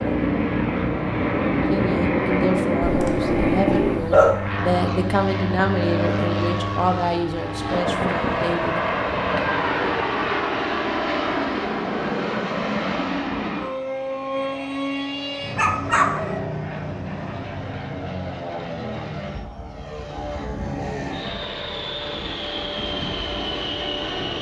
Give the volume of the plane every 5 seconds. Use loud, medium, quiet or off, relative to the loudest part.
loud, loud, loud, medium, medium.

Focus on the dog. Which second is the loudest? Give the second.
4 s.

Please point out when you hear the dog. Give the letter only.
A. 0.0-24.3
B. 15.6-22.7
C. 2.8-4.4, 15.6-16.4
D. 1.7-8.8
C.